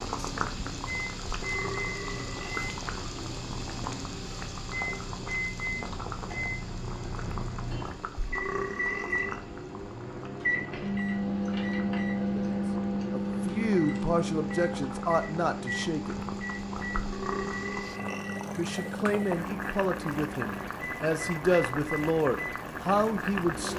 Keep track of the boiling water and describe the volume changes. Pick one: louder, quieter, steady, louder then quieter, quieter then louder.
quieter then louder.